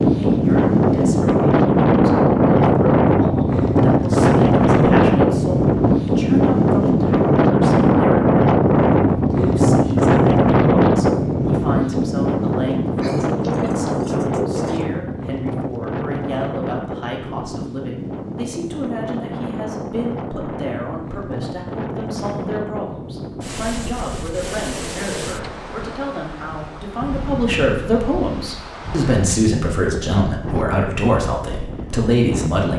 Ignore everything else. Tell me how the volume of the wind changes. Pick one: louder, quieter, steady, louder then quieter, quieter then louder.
quieter.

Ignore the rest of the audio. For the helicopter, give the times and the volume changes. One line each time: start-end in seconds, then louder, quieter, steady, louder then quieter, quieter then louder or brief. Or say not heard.
not heard.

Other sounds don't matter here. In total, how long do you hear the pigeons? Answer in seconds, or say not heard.
2 s.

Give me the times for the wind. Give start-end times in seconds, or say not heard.
0.0-32.7.